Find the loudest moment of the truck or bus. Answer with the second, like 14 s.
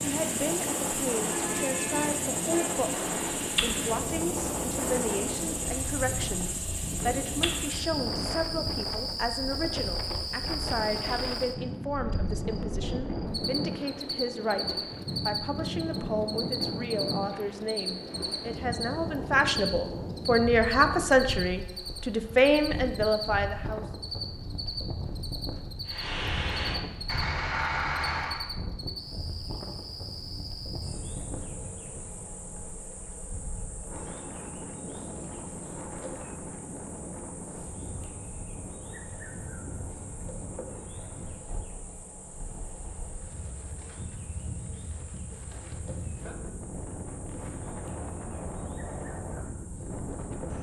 28 s.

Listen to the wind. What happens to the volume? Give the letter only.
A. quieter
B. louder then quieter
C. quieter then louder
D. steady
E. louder
A.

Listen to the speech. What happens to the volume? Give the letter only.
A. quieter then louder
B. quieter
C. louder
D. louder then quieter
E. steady
C.